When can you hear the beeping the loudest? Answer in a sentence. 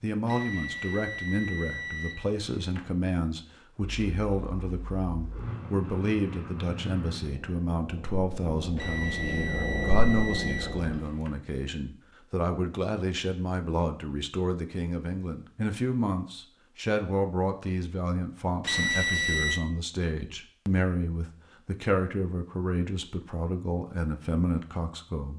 The loudest moment of the beeping is at 19 seconds.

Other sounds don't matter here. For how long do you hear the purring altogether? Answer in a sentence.
The purring can be heard for 7 seconds in total.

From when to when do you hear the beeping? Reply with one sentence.
The beeping can be heard from 0.2 to 2.9 s, from 8.8 to 11.3 s and from 18.6 to 19.6 s.